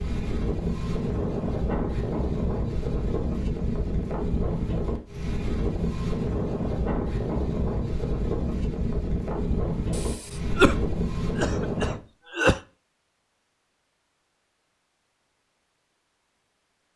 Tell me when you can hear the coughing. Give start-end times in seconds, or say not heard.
9.9-12.6.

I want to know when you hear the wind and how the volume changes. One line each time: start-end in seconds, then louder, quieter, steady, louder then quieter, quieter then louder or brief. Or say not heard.
0.0-12.0 steady.